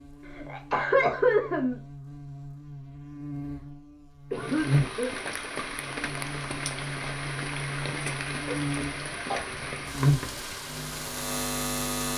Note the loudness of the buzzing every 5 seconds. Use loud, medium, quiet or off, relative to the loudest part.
medium, medium, loud.